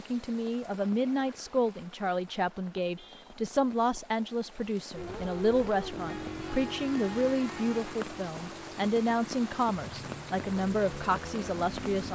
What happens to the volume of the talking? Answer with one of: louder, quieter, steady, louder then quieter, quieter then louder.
steady.